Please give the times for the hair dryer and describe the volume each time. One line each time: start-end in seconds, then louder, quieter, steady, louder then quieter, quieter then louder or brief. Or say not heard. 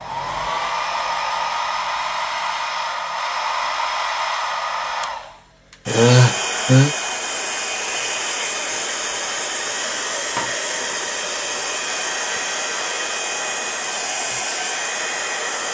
0.0-15.6 steady.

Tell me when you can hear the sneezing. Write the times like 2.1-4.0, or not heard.
5.8-7.0.